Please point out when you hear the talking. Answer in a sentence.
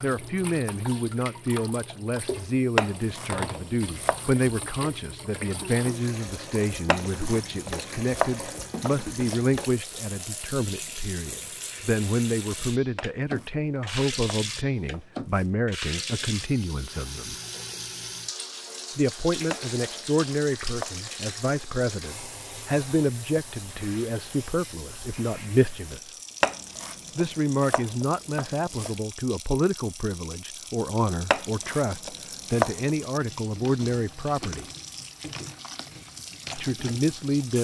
The talking can be heard from 0.0 to 17.4 s, from 18.9 to 26.1 s, from 27.1 to 34.6 s and from 36.5 to 37.6 s.